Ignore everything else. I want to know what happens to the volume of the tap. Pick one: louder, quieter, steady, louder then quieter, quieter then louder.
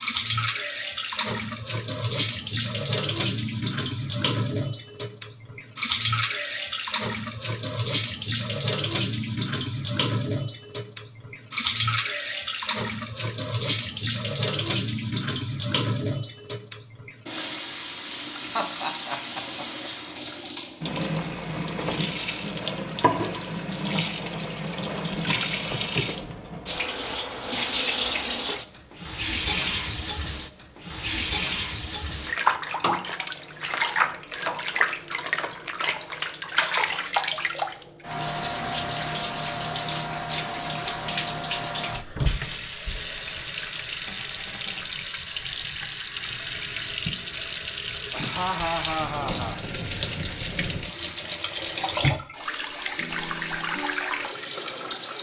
steady.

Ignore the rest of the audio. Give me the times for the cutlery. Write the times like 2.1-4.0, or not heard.
not heard.